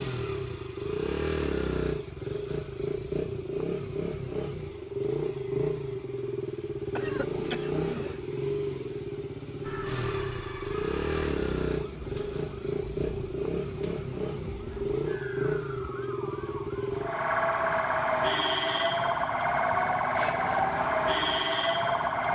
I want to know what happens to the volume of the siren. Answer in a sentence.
The volume of the siren goes up.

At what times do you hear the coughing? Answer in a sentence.
The coughing can be heard from 6.9 to 8.2 s.